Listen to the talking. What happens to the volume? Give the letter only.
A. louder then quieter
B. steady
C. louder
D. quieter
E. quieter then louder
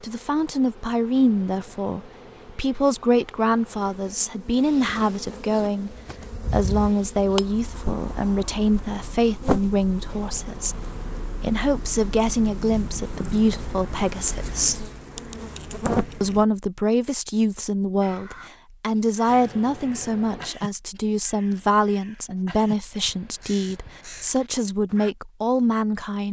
B.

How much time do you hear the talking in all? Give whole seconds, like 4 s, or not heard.
25 s.